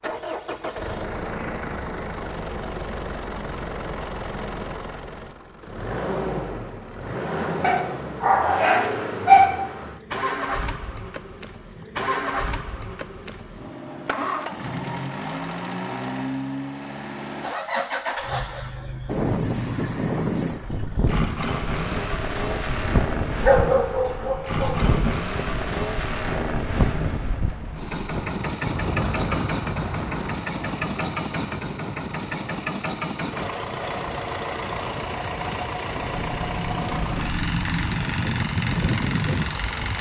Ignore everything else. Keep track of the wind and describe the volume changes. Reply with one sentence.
The loudness of the wind goes down, then up.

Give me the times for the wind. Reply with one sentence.
The wind can be heard from 19.1 to 39.9 s.